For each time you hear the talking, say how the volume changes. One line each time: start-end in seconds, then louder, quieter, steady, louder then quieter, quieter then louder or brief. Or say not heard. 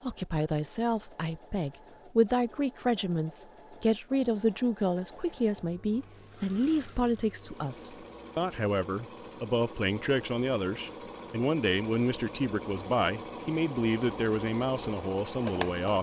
0.0-15.9 steady.